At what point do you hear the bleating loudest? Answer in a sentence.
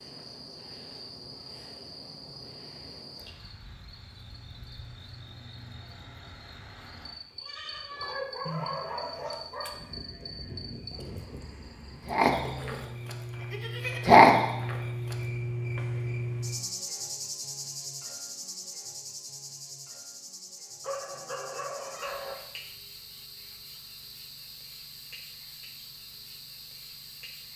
The loudest moment of the bleating is at 14 seconds.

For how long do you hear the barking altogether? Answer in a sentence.
The barking can be heard for 3 seconds in total.